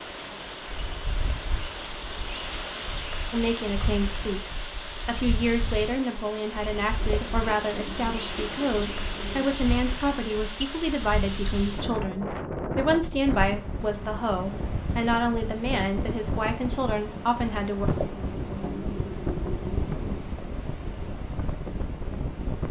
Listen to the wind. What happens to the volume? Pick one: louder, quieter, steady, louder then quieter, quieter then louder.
steady.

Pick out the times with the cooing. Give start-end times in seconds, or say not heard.
7.0-9.5, 17.9-20.2.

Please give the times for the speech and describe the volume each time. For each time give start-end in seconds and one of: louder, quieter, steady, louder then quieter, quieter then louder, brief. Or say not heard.
3.3-17.9 steady.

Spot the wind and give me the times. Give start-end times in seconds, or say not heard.
0.0-22.6.